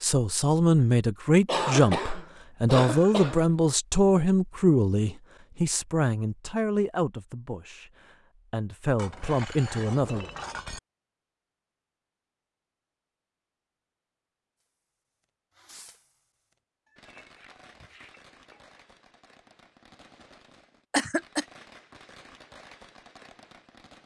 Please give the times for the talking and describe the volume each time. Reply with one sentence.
You can hear the talking from 0.0 to 10.2 s, getting quieter.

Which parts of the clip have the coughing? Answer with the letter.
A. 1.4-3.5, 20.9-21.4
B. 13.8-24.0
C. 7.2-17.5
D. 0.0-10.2
A.